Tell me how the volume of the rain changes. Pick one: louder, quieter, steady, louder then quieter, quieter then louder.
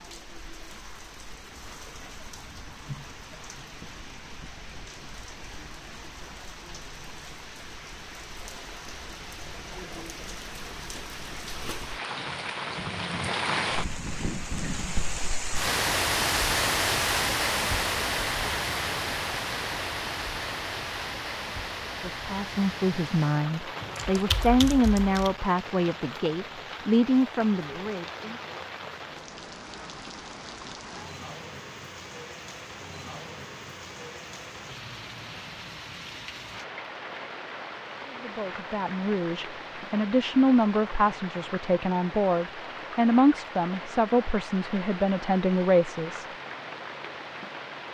louder then quieter.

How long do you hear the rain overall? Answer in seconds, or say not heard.
48 s.